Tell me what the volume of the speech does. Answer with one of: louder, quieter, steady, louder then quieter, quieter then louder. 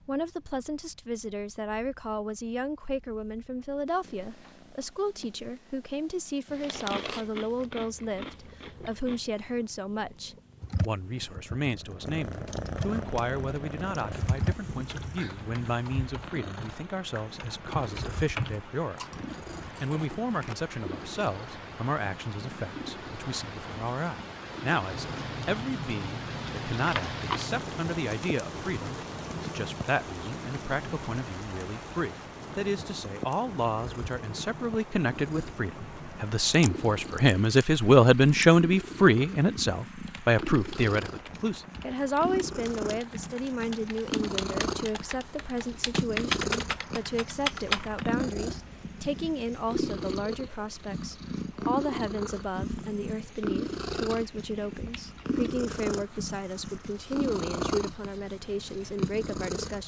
louder then quieter.